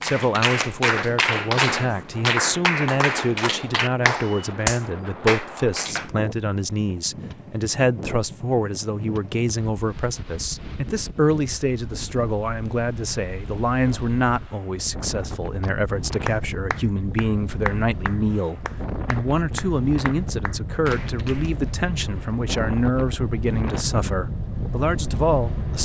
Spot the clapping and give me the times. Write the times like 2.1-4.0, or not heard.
0.0-6.0, 15.6-21.5.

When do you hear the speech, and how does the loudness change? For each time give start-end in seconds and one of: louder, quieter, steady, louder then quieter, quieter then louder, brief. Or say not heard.
0.0-25.8 steady.